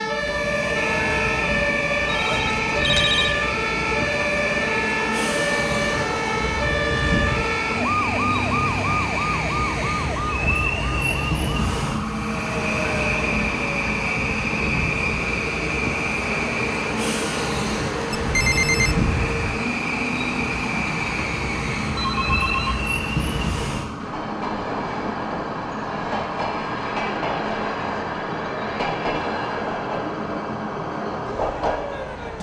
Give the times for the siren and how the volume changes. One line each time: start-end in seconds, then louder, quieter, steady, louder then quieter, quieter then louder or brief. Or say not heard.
0.0-32.3 quieter.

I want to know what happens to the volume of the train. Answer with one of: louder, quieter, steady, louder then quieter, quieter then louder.
steady.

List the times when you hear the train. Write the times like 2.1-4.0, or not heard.
0.1-32.3.